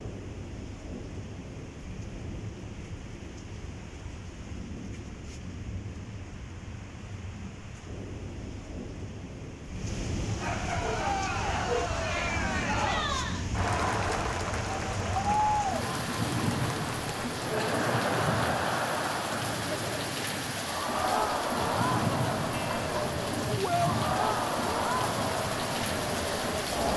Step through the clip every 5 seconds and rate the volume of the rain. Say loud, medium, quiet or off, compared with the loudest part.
medium, medium, loud, loud, loud, loud.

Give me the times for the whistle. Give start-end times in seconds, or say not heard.
not heard.